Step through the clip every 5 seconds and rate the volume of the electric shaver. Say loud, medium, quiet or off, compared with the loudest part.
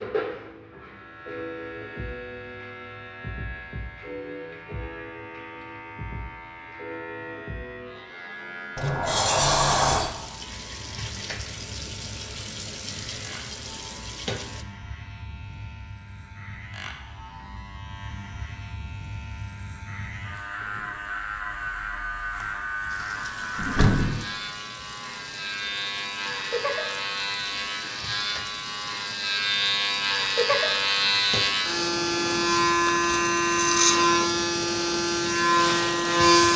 quiet, quiet, quiet, quiet, quiet, medium, loud, loud.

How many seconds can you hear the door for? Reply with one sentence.
You can hear the door for 2 seconds altogether.